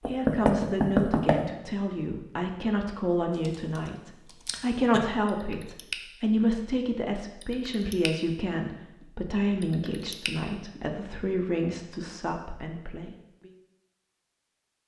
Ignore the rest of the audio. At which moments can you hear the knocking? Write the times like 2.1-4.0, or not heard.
0.0-1.4.